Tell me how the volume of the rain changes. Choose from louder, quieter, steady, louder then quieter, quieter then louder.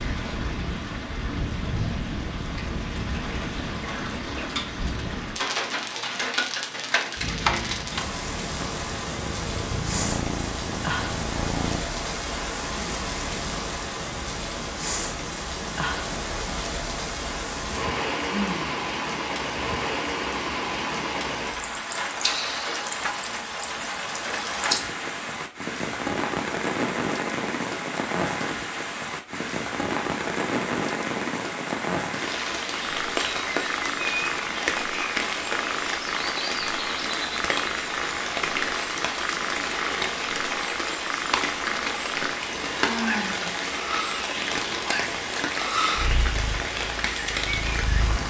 steady.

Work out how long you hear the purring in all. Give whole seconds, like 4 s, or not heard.
20 s.